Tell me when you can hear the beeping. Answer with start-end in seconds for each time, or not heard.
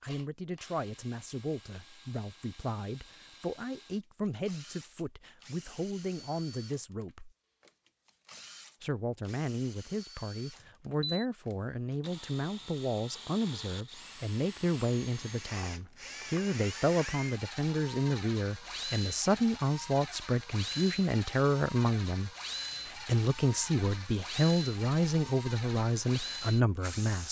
10.6-11.2.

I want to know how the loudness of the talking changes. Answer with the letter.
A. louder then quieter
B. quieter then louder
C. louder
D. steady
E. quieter
C.